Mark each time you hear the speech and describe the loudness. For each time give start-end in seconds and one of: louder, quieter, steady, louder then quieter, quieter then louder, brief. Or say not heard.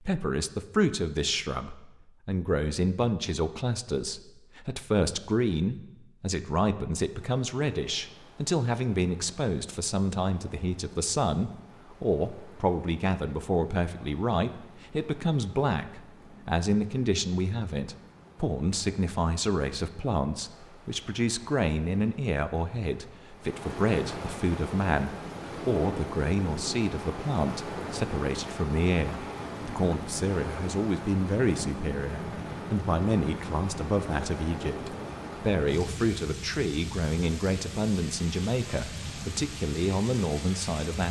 0.0-41.0 steady.